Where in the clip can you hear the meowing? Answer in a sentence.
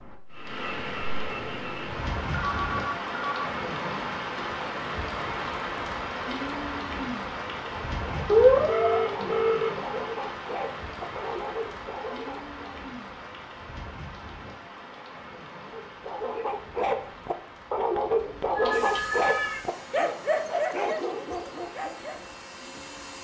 You can hear the meowing from 8.2 to 9.3 s and from 18.4 to 19.6 s.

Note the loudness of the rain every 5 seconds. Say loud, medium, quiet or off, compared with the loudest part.
loud, loud, medium, quiet, quiet.